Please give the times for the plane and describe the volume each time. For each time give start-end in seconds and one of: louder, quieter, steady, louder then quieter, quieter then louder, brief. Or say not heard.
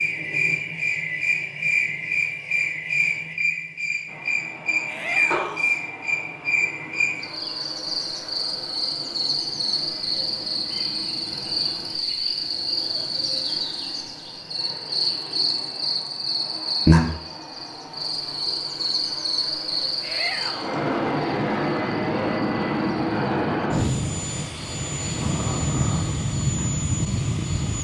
4.0-27.7 louder.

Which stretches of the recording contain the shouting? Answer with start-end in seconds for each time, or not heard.
4.8-5.7, 20.0-20.9.